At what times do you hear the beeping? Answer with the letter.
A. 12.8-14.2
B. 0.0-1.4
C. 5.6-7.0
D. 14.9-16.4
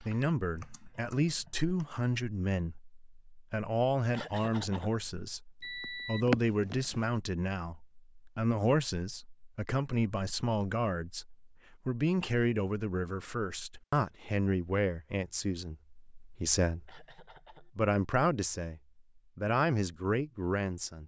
C.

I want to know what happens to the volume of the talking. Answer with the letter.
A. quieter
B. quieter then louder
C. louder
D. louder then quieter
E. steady
E.